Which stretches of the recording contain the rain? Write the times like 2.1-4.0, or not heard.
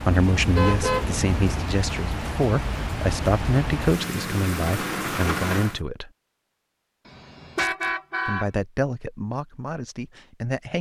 0.0-5.8.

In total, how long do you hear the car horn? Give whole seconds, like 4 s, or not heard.
3 s.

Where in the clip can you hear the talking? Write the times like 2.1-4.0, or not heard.
0.0-6.1, 8.2-10.7.